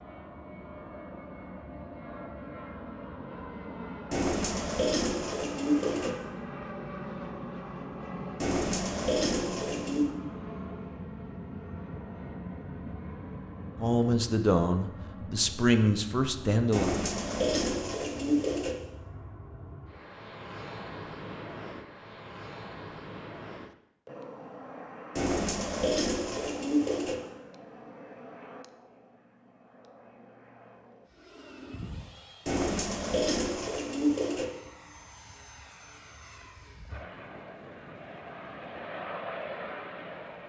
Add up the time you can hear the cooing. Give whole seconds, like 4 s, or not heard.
10 s.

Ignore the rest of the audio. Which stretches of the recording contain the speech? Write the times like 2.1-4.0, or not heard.
13.8-16.9.